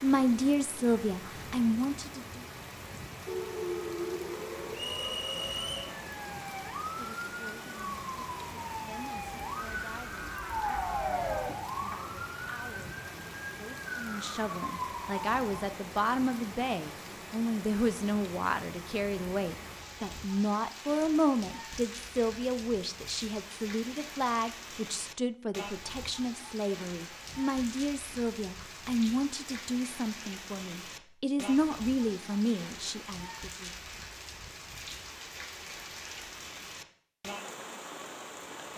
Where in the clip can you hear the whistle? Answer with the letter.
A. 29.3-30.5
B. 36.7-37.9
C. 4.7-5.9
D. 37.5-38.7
C.